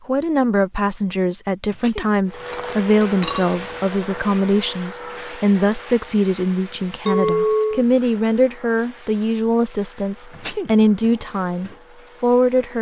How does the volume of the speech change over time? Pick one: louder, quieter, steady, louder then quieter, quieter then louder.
steady.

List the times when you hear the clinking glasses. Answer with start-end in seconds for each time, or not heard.
2.3-4.0, 7.0-7.8.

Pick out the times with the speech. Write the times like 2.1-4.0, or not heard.
0.1-12.7.